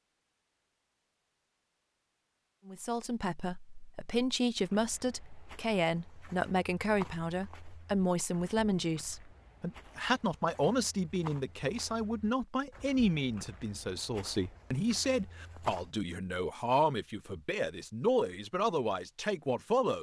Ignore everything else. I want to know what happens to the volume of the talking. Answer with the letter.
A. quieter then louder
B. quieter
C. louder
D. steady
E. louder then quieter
D.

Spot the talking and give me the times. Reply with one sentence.
You can hear the talking from 2.6 to 19.9 s.